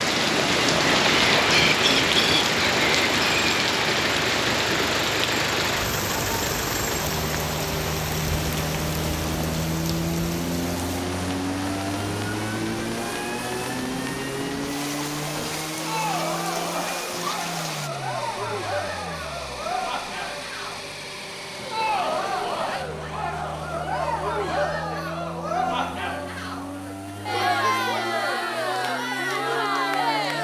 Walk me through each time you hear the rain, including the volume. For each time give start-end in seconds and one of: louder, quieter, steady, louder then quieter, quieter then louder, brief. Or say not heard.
0.0-17.9 quieter.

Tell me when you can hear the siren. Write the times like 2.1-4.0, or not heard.
not heard.